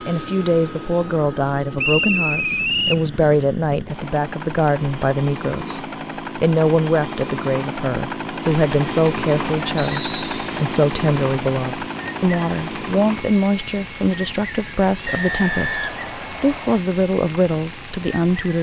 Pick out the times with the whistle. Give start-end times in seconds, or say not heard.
1.8-3.0, 9.8-10.3, 15.1-16.8.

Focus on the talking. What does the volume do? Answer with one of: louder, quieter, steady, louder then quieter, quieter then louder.
steady.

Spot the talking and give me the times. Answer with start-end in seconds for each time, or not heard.
0.1-18.5.